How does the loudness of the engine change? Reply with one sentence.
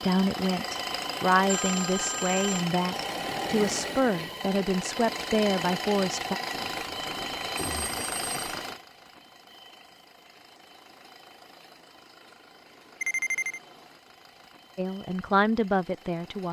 The loudness of the engine goes down.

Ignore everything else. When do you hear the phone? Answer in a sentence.
The phone can be heard from 1.4 to 2.6 s, from 6.5 to 8.6 s and from 13.0 to 13.6 s.